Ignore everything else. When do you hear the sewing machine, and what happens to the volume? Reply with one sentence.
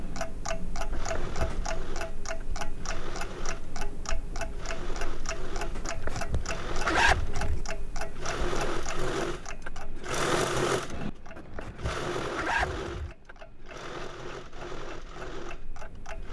The sewing machine can be heard from 0.0 to 16.2 s, getting louder then quieter.